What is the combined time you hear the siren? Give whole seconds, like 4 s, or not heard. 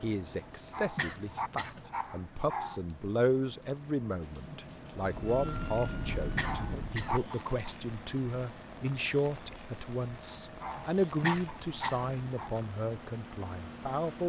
2 s.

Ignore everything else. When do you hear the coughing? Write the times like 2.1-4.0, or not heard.
0.9-1.9, 6.3-7.2, 11.2-12.2.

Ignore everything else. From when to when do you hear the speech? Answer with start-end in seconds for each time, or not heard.
0.0-14.2.